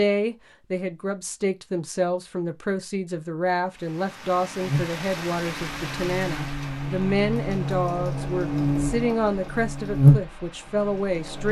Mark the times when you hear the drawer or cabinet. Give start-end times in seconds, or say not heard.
not heard.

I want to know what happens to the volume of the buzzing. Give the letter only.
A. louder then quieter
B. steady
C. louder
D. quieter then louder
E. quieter
C.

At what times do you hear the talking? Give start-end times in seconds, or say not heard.
0.0-11.4.